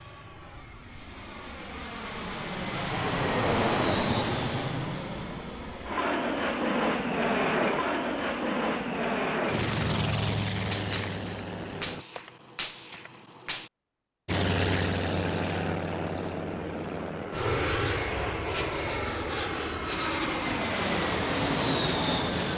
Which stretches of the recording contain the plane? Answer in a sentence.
You can hear the plane from 0.0 to 12.1 s and from 14.2 to 22.5 s.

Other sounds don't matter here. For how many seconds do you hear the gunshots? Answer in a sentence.
You can hear the gunshots for 3 seconds altogether.